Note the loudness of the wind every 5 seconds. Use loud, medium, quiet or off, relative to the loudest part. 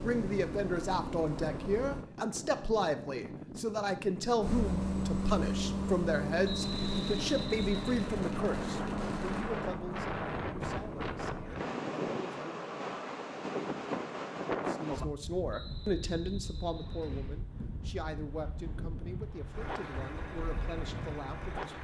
medium, loud, loud, medium, medium.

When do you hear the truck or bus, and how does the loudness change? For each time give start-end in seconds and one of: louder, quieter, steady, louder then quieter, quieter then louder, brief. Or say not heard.
0.0-2.0 brief
4.4-11.7 quieter
19.5-21.8 brief.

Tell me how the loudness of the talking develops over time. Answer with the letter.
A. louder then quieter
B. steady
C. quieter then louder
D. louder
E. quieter
E.